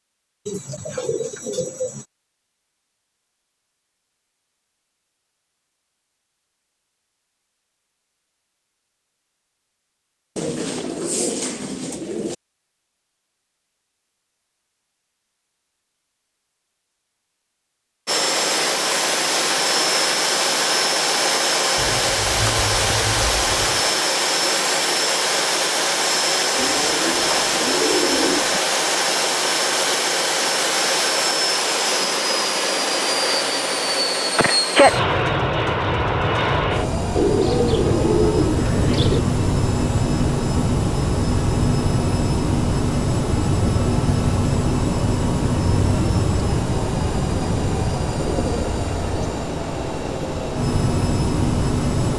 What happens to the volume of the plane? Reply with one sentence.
The volume of the plane stays about the same.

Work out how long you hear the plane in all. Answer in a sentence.
The plane can be heard for 34 seconds in total.